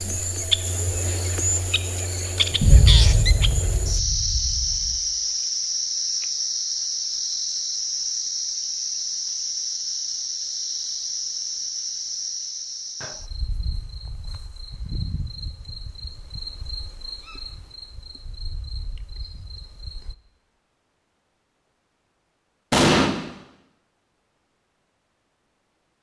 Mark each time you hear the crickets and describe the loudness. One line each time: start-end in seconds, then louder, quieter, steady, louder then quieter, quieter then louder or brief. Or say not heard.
0.0-20.1 quieter.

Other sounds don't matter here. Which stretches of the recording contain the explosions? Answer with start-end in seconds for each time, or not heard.
2.6-5.0, 22.7-23.1.